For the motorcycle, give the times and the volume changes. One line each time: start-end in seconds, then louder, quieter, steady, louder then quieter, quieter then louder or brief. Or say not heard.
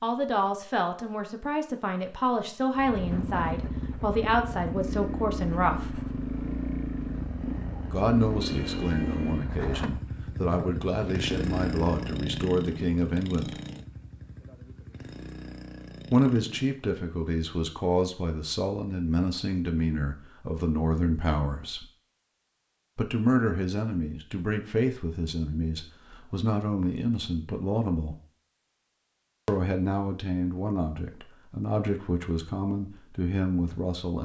2.8-16.8 quieter.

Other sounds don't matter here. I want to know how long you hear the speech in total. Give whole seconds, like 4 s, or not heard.
27 s.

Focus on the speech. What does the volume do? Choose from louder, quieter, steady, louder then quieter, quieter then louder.
steady.